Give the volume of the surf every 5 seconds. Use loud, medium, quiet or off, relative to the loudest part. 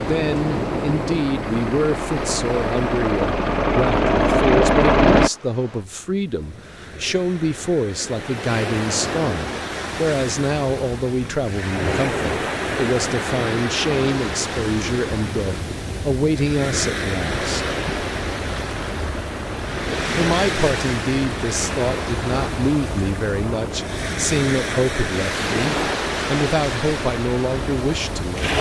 loud, medium, loud, loud, loud, loud.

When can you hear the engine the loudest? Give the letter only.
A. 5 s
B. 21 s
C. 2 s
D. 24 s
A.